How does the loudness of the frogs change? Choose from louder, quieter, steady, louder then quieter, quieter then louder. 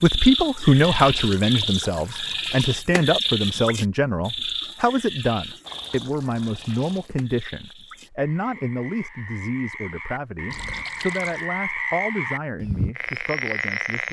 quieter then louder.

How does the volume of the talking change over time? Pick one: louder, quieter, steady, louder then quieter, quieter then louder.
quieter.